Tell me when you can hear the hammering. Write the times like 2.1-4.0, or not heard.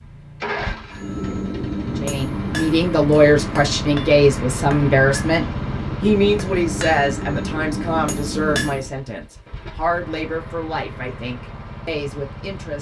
0.9-8.9.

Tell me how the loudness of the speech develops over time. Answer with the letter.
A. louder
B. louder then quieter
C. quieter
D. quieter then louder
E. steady
C.